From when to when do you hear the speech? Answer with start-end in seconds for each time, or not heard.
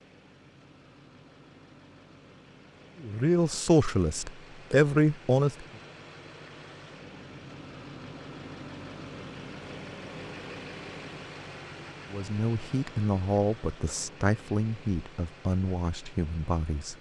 3.0-5.7, 12.1-16.9.